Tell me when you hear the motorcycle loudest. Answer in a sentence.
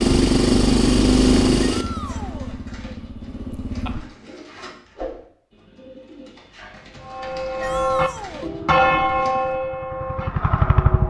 The volume of the motorcycle peaks at 1 second.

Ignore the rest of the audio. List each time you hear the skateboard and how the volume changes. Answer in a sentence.
You can't hear the skateboard here.